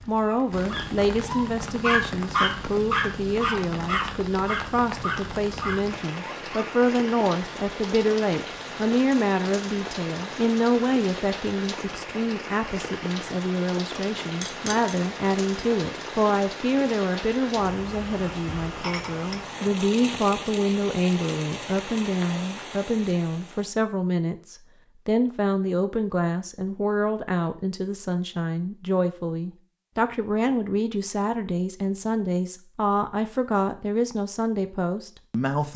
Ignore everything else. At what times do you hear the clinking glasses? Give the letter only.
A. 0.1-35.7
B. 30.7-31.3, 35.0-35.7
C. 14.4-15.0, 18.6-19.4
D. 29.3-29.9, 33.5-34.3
C.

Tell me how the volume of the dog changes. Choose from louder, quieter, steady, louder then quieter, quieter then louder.
louder then quieter.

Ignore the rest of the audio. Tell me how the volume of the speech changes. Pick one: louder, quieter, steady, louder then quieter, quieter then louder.
steady.